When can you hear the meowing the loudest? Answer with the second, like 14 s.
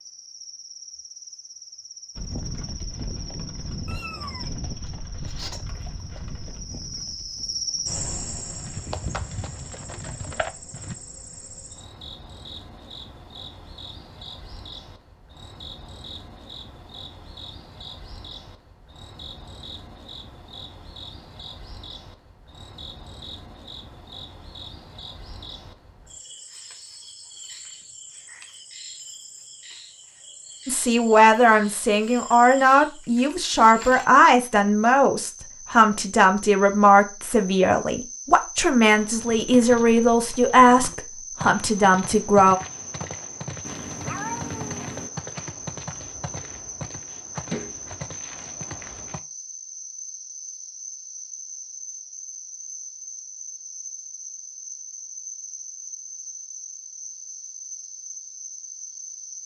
44 s.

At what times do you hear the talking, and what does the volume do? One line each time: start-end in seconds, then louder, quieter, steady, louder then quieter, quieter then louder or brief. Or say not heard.
30.6-42.5 steady.